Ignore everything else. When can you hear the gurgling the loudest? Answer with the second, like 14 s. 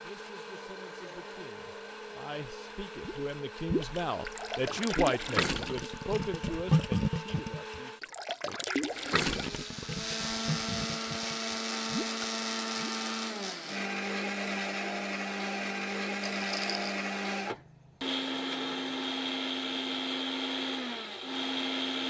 7 s.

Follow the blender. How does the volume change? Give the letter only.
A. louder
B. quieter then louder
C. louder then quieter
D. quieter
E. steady
A.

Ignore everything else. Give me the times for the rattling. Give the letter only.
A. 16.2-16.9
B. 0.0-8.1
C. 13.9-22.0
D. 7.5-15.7
A.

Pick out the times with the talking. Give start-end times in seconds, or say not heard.
0.0-8.1.